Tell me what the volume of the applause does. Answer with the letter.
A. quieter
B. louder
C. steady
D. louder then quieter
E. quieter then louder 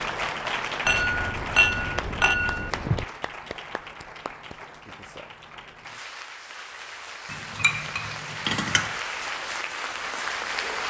E.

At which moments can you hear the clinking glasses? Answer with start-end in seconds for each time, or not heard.
0.8-3.0, 7.3-8.9.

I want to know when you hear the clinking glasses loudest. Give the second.
2 s.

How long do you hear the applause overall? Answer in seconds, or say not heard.
11 s.